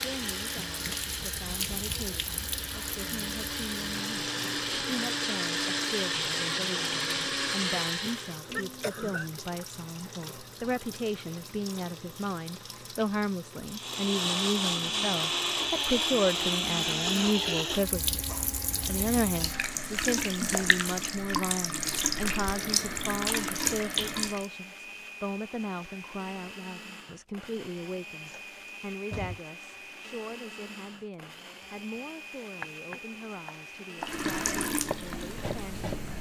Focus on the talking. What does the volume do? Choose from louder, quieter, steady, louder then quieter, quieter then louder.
louder then quieter.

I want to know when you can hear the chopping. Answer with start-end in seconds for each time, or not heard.
32.5-36.1.